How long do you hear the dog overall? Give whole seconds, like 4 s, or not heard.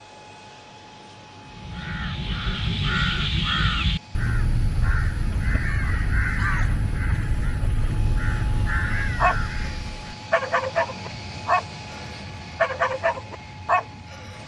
5 s.